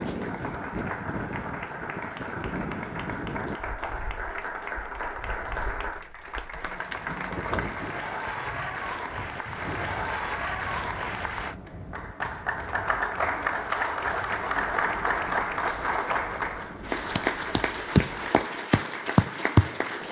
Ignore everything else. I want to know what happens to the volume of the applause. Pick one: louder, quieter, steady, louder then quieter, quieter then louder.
louder.